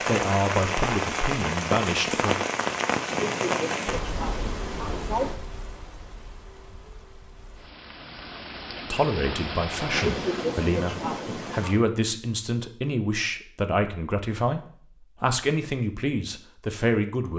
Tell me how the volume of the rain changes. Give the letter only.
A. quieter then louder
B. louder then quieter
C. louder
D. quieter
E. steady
A.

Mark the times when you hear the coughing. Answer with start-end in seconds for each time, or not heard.
3.0-5.3, 9.9-11.8.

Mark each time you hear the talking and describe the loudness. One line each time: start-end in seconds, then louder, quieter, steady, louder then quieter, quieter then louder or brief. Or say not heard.
0.1-2.4 brief
8.9-17.3 steady.